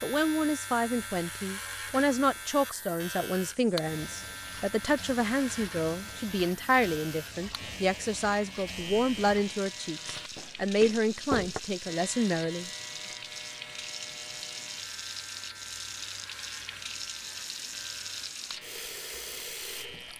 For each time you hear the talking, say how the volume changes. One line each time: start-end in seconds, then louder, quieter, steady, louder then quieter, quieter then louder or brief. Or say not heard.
0.0-12.7 steady.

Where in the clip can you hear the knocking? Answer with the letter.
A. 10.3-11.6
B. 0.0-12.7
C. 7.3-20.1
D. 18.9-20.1
A.